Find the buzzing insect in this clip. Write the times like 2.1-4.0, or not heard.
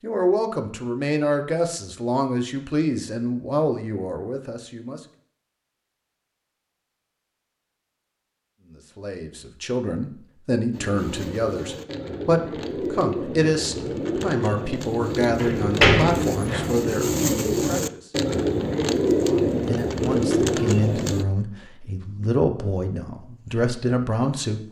not heard.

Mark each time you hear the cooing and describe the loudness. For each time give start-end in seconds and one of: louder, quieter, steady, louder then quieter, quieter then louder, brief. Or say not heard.
10.7-21.2 louder.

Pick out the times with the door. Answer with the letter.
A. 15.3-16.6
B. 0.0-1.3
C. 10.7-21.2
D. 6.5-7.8
A.